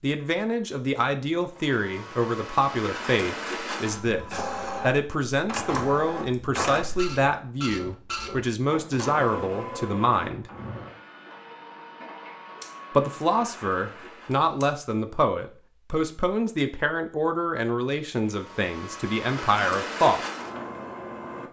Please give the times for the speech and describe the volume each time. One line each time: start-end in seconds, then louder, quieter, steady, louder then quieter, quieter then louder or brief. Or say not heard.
0.0-10.5 steady
12.9-20.2 steady.